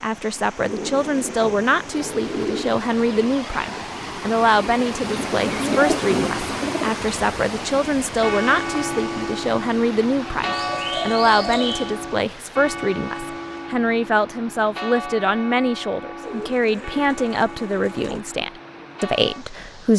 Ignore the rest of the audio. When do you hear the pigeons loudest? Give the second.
6 s.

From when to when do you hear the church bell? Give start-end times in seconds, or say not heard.
8.2-19.4.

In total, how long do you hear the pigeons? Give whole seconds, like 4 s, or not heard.
8 s.